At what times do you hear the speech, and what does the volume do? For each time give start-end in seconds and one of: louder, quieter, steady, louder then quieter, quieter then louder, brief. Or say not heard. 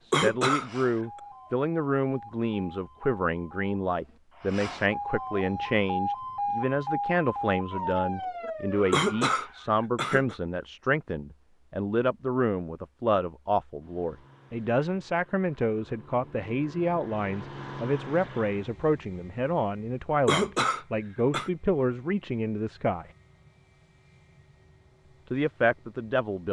0.1-23.1 steady
25.3-26.4 brief.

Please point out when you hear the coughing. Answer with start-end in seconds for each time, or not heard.
0.1-0.7, 8.9-10.3, 20.2-21.5.